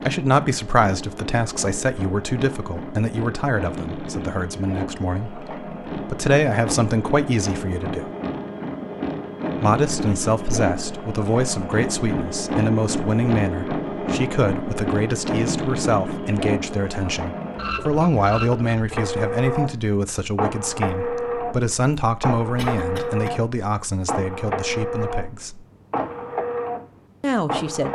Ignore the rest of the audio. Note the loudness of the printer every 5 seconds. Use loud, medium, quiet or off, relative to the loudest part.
medium, loud, loud, loud, loud, loud.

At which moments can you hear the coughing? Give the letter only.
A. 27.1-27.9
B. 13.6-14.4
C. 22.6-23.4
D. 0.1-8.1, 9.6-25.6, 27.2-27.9
C.